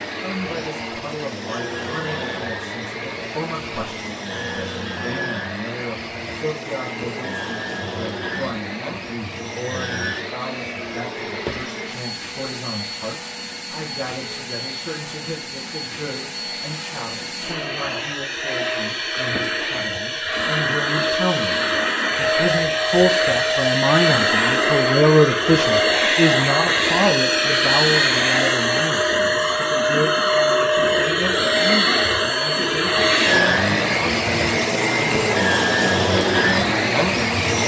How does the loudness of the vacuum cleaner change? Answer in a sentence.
The volume of the vacuum cleaner goes up.